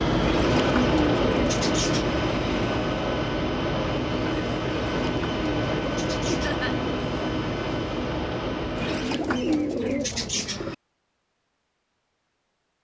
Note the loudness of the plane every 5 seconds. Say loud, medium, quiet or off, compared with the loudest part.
loud, loud, off.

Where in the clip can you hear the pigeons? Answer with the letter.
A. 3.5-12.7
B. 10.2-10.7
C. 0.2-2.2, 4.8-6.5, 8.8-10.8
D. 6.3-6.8
C.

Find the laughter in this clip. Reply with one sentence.
You can hear the laughter from 6.3 to 6.8 s.